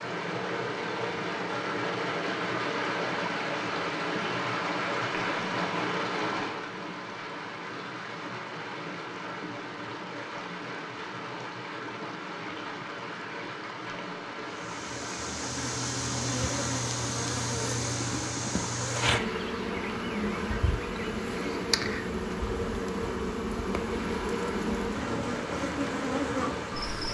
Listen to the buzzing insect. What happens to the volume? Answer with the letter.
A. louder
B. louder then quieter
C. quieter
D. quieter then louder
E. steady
E.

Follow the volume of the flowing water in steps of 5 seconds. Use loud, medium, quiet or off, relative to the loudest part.
loud, loud, medium, medium, medium, medium.